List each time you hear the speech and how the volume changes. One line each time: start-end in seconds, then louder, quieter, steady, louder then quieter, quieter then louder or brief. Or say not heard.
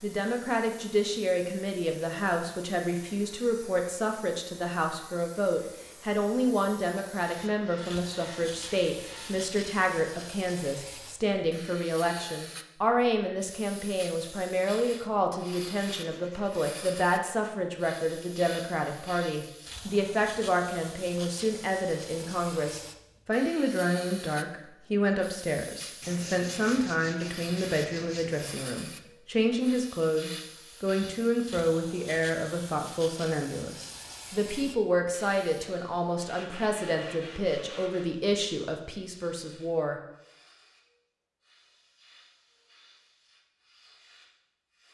0.0-40.0 steady.